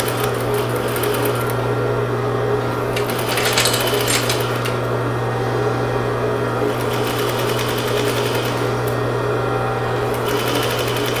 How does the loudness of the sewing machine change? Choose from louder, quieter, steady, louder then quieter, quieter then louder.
steady.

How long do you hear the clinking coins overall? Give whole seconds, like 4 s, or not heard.
2 s.